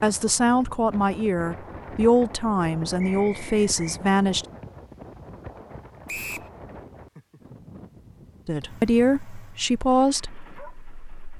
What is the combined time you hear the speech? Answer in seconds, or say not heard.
7 s.